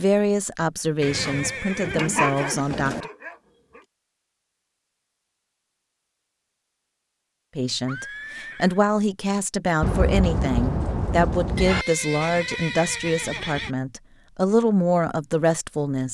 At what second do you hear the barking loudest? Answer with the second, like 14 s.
2 s.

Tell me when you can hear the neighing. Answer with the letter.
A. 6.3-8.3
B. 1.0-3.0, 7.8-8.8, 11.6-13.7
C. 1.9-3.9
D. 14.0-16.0
B.